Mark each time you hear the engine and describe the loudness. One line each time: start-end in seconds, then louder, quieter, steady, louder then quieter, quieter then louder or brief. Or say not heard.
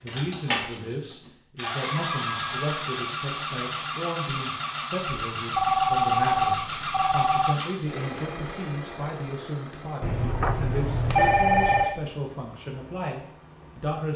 0.0-14.1 quieter.